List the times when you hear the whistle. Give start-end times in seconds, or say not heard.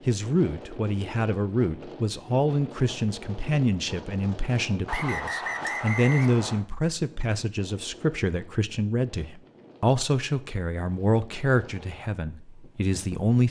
4.8-6.7.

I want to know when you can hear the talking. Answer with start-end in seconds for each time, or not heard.
0.1-13.4.